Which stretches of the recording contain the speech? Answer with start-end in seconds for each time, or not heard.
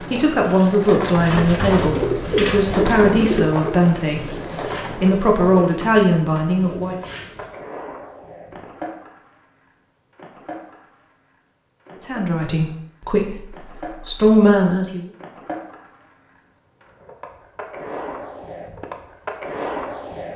0.0-7.0, 12.0-15.1.